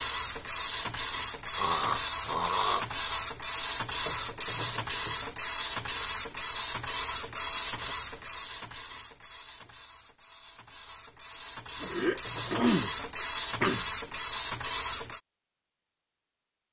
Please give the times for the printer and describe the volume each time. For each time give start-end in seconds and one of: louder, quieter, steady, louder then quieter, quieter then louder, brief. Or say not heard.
0.0-15.2 quieter then louder.